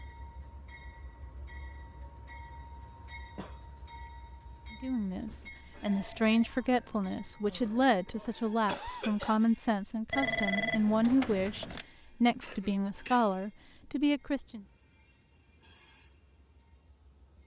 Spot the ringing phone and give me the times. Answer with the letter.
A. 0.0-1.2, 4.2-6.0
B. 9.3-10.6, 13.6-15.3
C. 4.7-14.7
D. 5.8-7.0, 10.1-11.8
D.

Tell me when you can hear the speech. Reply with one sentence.
You can hear the speech from 4.7 to 14.7 s.